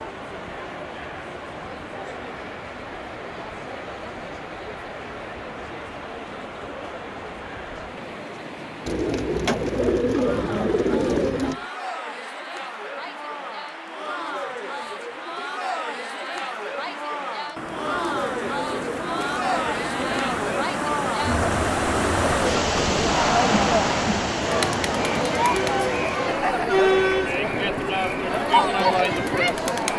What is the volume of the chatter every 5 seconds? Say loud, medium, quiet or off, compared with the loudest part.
quiet, quiet, quiet, medium, loud, loud.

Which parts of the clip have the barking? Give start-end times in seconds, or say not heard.
not heard.